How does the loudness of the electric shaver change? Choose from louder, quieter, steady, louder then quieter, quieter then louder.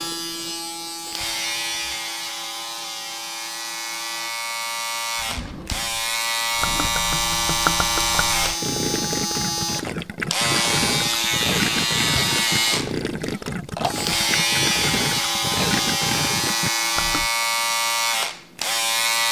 louder.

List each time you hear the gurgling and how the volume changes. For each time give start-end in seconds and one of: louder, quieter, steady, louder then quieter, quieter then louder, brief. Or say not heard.
6.6-17.3 steady.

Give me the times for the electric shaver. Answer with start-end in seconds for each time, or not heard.
0.0-19.2.